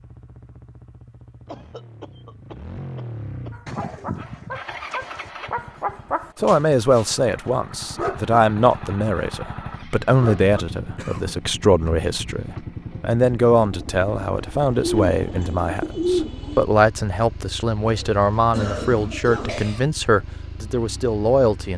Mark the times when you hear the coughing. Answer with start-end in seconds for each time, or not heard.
1.4-3.5, 10.9-11.4, 17.9-19.8.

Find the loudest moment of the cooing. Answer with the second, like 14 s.
16 s.